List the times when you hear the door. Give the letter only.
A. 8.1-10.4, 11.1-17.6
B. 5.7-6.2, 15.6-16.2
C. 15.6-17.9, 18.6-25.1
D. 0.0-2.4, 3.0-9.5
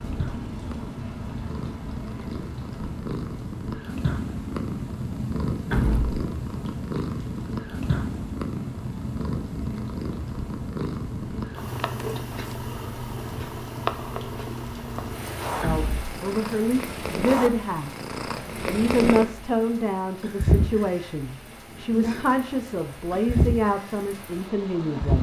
B.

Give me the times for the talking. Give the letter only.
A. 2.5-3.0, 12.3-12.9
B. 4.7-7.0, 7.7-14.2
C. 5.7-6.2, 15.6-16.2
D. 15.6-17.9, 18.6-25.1
D.